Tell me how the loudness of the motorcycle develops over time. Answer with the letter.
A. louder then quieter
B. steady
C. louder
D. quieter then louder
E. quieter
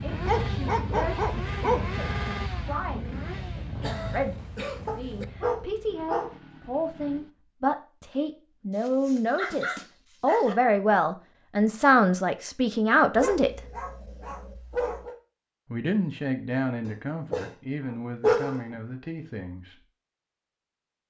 E.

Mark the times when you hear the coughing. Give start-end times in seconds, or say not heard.
3.8-5.2.